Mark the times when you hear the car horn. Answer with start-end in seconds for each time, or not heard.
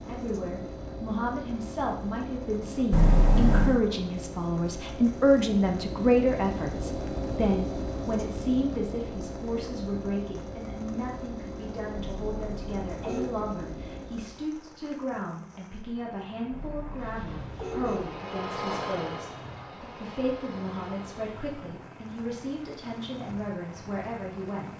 2.9-3.8, 12.0-13.3, 16.5-18.1.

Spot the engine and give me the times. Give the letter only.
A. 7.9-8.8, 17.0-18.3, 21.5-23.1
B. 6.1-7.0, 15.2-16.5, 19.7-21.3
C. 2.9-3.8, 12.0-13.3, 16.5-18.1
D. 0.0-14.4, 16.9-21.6
D.